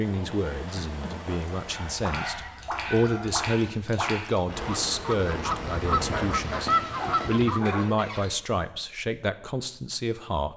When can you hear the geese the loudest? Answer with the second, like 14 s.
7 s.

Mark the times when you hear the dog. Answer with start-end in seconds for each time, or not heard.
1.6-3.5, 6.0-8.0.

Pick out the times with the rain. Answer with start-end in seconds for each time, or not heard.
0.0-7.8.